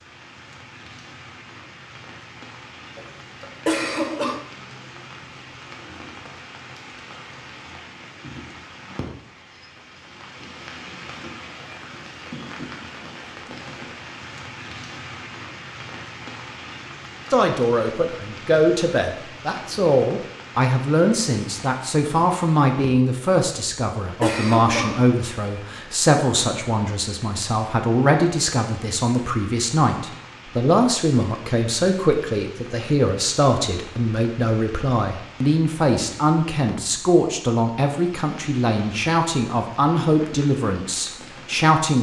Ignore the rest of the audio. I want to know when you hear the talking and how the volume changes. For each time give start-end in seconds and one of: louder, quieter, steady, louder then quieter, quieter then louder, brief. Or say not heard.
17.3-41.9 steady.